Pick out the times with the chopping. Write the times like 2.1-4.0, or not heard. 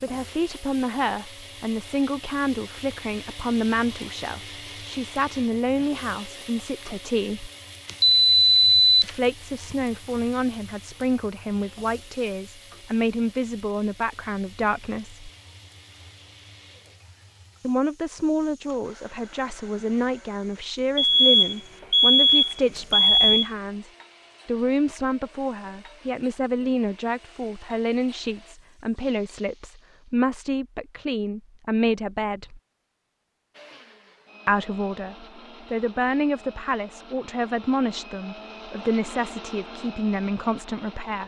not heard.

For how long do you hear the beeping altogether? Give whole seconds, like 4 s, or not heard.
4 s.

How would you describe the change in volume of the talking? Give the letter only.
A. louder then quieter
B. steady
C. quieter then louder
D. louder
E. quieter
B.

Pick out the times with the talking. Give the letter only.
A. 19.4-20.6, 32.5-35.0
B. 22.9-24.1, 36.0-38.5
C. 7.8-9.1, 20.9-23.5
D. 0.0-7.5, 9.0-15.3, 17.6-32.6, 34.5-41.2
D.